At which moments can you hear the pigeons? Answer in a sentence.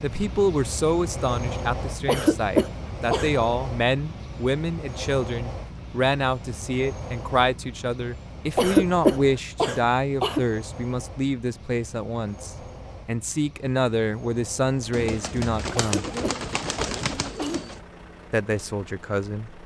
The pigeons can be heard from 14.9 to 17.8 s.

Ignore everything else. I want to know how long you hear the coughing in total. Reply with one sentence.
The coughing can be heard for 5 seconds in total.